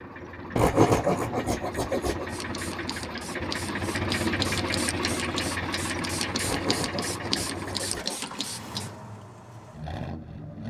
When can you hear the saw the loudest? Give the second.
1 s.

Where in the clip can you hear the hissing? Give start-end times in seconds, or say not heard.
2.2-8.9.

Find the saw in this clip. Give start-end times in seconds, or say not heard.
0.6-2.2, 6.4-8.2.